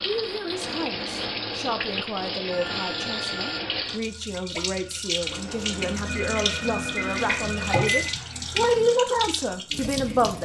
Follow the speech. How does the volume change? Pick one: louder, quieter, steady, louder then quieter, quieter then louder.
louder.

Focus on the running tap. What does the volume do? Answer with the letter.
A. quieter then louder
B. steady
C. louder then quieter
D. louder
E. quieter
B.